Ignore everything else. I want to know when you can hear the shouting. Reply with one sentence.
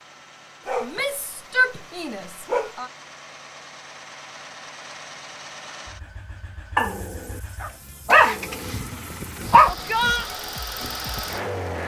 The shouting can be heard from 0.8 to 2.9 s and from 9.7 to 10.2 s.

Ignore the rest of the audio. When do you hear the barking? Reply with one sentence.
The barking can be heard from 0.7 to 2.8 s and from 6.8 to 9.8 s.